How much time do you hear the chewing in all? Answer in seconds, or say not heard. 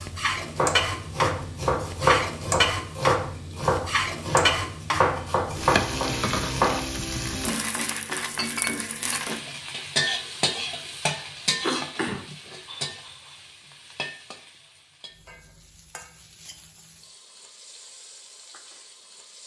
not heard.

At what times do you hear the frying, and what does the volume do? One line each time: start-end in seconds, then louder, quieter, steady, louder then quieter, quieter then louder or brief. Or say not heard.
0.0-19.4 quieter.